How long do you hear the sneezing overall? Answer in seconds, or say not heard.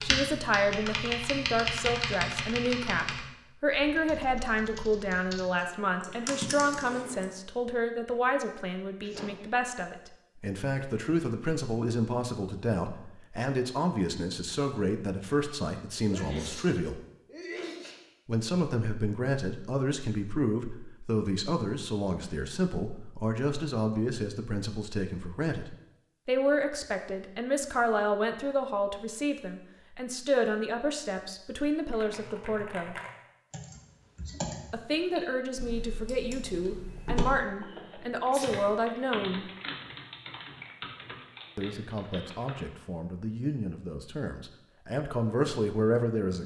3 s.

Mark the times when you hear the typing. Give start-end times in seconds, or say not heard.
0.0-7.3, 31.9-42.7.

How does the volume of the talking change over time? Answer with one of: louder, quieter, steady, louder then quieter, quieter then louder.
steady.